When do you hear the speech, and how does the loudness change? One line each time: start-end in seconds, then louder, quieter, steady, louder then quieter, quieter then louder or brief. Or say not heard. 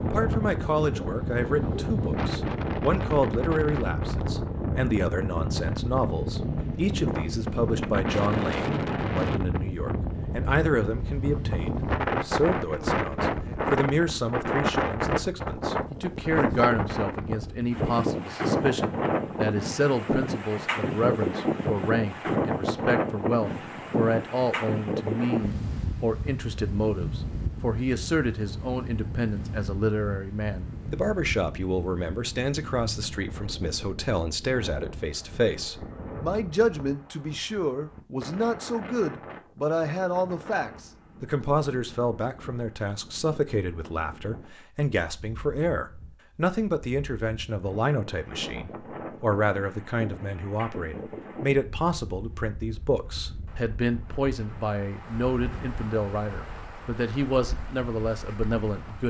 0.0-59.0 steady.